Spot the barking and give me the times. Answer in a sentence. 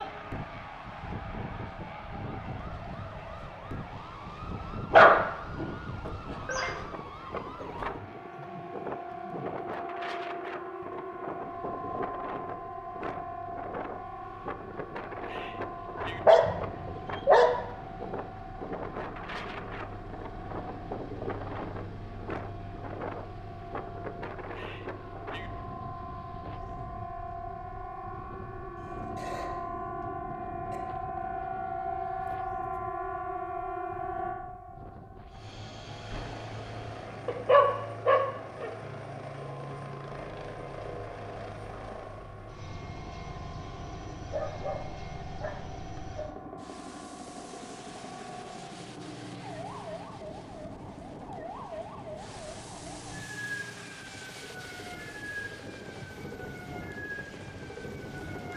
The barking can be heard from 4.9 to 6.8 s, from 15.9 to 17.6 s, from 37.2 to 38.7 s and from 44.3 to 46.3 s.